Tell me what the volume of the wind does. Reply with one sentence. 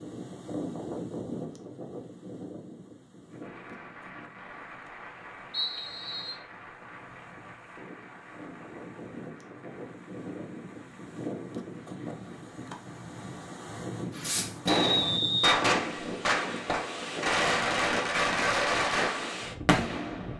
The loudness of the wind goes down, then up.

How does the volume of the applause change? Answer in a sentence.
The loudness of the applause goes down.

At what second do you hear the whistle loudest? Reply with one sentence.
The loudest moment of the whistle is at 15 seconds.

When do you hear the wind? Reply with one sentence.
You can hear the wind from 0.0 to 20.3 s.